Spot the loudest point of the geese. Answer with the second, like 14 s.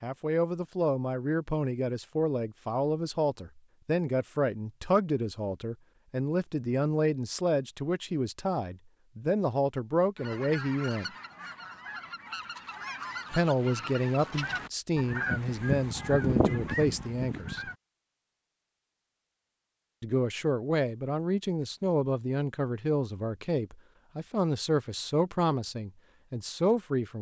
16 s.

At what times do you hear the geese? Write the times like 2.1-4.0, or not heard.
10.2-17.8.